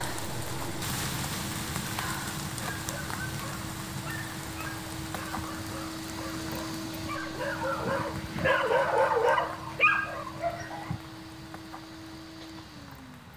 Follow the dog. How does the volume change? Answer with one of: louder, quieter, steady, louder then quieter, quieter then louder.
louder.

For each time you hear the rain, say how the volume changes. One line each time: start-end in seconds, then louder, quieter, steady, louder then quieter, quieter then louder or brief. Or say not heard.
0.0-13.3 quieter.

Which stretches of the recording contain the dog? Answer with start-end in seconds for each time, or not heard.
2.5-11.0.